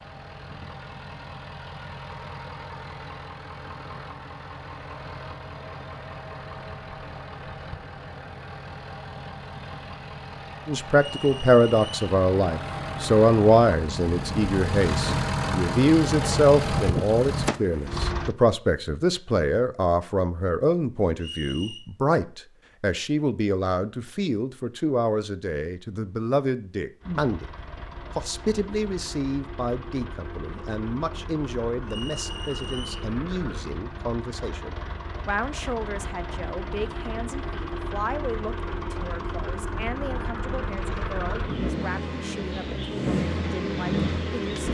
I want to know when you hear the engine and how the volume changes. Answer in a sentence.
You can hear the engine from 0.0 to 18.4 s, getting louder; and from 27.0 to 44.6 s, getting louder.